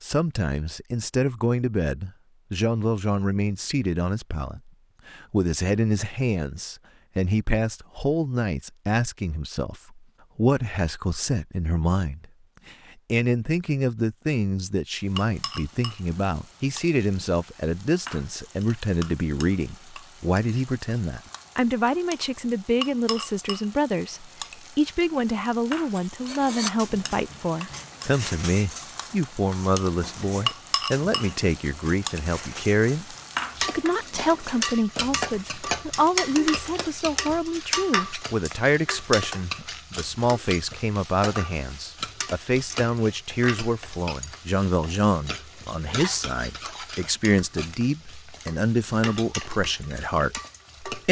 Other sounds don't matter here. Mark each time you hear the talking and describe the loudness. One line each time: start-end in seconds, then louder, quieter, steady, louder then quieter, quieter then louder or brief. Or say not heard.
0.0-51.0 steady.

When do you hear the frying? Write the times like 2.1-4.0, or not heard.
14.9-51.0.